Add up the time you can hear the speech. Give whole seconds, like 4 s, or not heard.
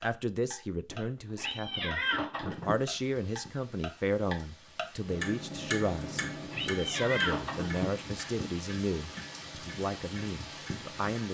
11 s.